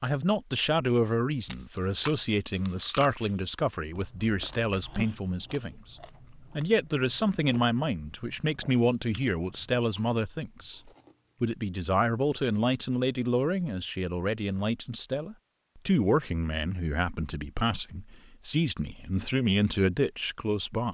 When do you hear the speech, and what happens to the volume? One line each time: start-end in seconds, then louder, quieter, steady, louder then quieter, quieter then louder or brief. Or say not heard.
0.0-20.8 steady.